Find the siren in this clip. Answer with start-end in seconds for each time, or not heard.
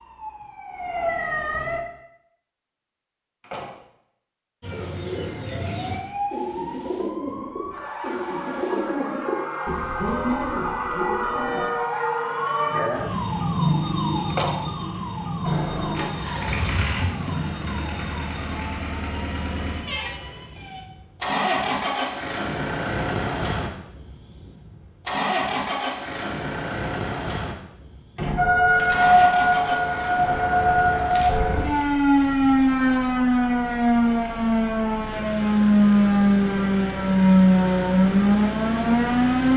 0.0-1.8, 5.5-20.9, 28.4-39.5.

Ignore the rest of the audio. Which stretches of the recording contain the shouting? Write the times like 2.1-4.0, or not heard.
not heard.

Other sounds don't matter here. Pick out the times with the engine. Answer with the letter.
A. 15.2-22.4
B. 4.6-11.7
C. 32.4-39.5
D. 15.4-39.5
D.